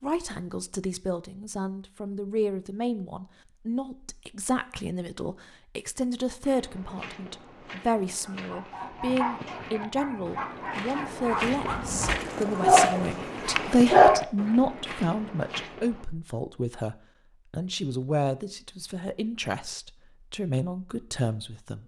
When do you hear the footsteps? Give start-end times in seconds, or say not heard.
6.4-16.1.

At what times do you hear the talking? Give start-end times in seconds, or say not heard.
0.0-21.8.